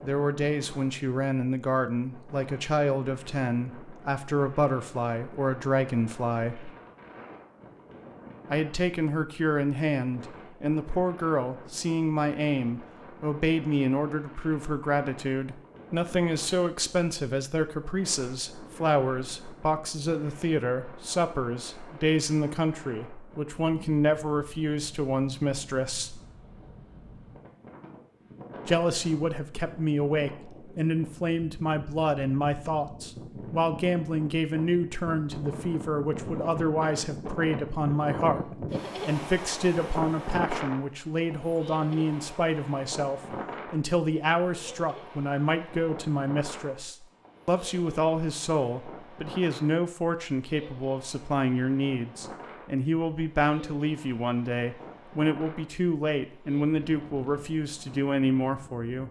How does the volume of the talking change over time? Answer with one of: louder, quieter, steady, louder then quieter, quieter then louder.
steady.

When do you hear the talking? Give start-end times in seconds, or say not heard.
0.0-6.7, 8.5-26.2, 28.6-59.0.